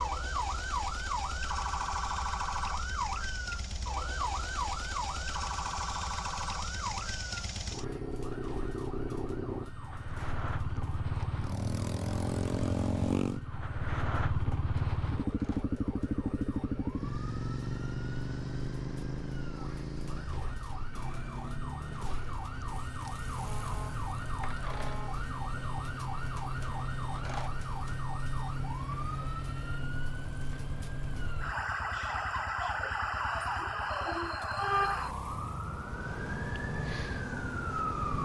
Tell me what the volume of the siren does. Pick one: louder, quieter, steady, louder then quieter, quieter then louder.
quieter then louder.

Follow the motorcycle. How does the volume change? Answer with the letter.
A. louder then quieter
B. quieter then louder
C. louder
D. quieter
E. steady
A.